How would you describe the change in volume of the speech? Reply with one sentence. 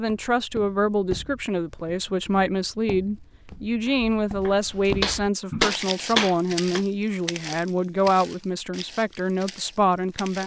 The volume of the speech stays about the same.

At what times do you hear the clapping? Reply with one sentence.
You can hear the clapping from 3.9 to 6.8 s.